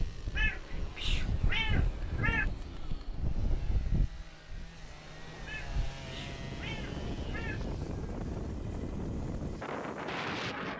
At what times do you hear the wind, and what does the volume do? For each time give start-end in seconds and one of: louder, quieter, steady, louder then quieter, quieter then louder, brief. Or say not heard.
0.0-10.7 quieter then louder.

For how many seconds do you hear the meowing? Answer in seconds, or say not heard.
4 s.